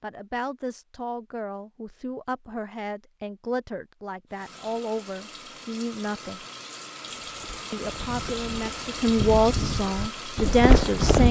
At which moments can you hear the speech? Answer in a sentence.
The speech can be heard from 0.0 to 6.5 s and from 7.7 to 11.2 s.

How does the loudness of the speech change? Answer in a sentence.
The loudness of the speech goes up.